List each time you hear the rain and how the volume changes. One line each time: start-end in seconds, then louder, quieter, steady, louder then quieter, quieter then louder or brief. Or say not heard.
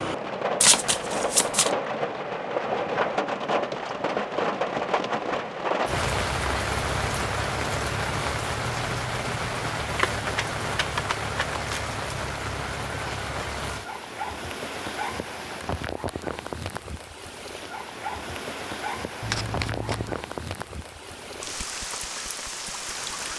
0.0-23.3 quieter.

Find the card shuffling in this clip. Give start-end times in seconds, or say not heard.
0.6-1.8, 9.9-11.8, 19.2-20.1.